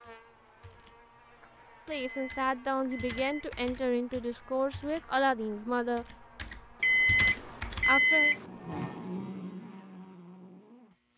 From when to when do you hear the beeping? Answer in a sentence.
You can hear the beeping from 1.9 to 3.5 s and from 6.8 to 8.4 s.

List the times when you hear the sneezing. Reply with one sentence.
The sneezing can't be heard in this clip.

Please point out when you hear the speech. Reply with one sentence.
The speech can be heard from 1.9 to 6.0 s and from 7.8 to 8.3 s.